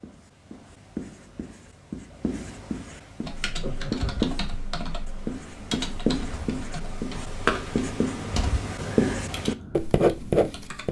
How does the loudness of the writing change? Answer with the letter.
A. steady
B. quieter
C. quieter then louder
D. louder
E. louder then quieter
D.